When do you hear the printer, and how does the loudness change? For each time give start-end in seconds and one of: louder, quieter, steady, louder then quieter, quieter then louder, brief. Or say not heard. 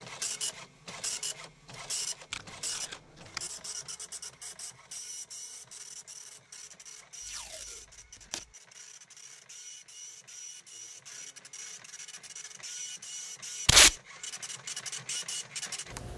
0.0-16.1 quieter then louder.